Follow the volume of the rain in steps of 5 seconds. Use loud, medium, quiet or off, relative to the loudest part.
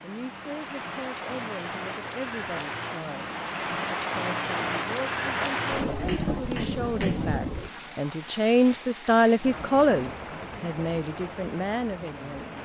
loud, loud, medium.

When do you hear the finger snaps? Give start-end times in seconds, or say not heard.
6.0-7.4.